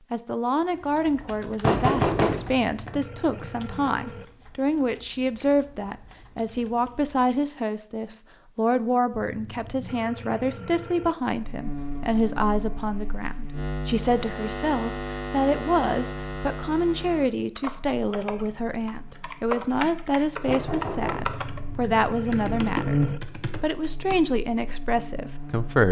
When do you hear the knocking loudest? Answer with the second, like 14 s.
2 s.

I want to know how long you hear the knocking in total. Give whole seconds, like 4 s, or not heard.
2 s.